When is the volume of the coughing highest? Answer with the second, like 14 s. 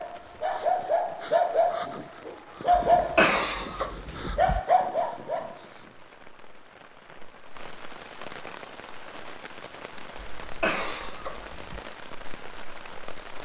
3 s.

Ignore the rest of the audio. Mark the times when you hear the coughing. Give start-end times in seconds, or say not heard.
3.0-4.6, 10.2-11.8.